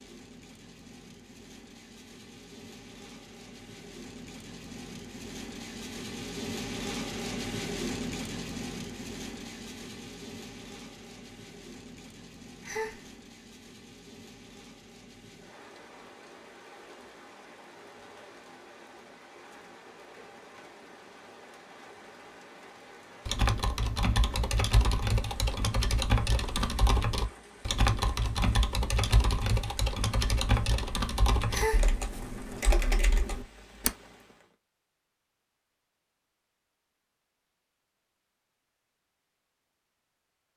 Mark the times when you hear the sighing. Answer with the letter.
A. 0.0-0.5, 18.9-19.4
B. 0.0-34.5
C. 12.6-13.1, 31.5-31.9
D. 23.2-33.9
C.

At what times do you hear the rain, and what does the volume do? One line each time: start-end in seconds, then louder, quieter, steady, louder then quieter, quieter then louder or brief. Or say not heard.
0.0-34.5 quieter.